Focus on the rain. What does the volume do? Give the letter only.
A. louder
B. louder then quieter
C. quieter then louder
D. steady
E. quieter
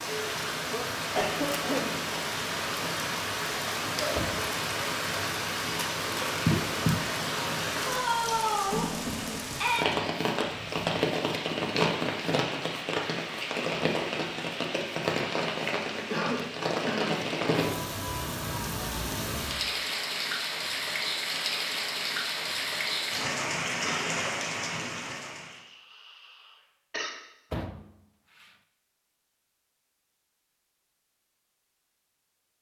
D.